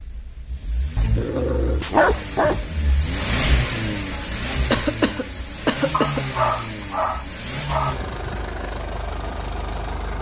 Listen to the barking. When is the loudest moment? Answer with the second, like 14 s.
2 s.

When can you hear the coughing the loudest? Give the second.
5 s.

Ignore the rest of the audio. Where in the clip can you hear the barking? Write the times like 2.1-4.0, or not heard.
0.9-2.7, 5.9-8.0.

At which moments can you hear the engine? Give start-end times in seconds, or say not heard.
0.0-10.1.